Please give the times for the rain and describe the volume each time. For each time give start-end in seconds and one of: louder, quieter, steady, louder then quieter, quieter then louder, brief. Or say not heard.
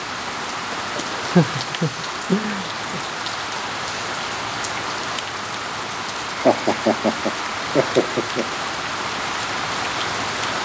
0.0-10.6 steady.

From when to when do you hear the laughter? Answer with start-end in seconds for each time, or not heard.
1.1-3.0, 6.2-8.6.